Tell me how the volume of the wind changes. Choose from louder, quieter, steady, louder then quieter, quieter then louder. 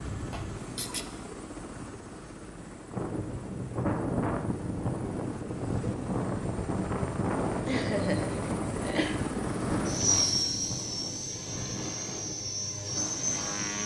quieter.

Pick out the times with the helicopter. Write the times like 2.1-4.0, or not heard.
0.0-13.8.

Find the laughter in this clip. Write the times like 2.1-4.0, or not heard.
0.3-1.1, 7.0-9.2.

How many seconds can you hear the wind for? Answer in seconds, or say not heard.
11 s.